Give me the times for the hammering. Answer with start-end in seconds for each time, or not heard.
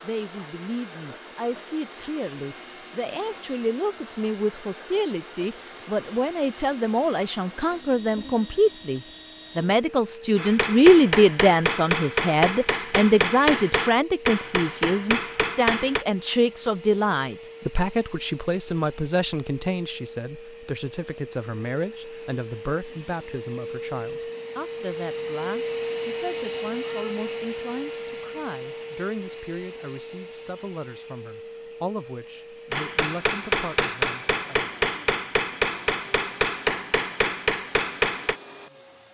10.3-16.1, 32.7-38.4.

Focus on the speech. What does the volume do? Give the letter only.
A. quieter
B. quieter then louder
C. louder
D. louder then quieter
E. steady
D.